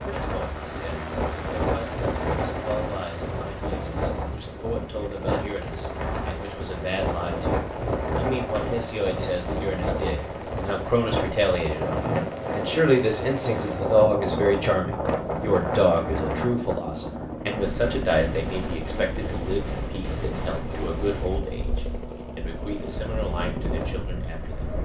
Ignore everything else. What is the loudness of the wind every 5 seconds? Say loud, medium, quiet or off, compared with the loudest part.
loud, loud, loud, loud, medium.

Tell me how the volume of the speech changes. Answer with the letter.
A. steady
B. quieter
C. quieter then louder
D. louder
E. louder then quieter
E.